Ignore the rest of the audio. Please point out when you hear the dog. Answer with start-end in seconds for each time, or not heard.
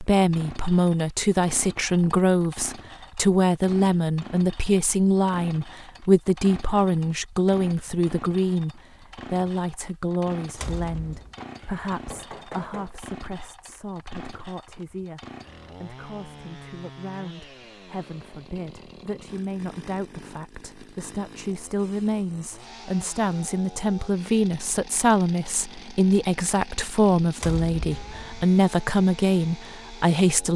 not heard.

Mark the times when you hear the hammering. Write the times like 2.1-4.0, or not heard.
11.4-13.0.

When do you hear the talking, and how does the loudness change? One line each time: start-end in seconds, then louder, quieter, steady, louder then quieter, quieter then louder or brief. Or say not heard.
0.0-30.5 quieter then louder.